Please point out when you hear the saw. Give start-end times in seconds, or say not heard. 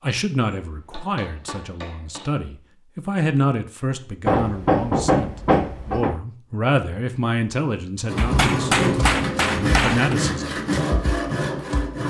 8.1-12.0.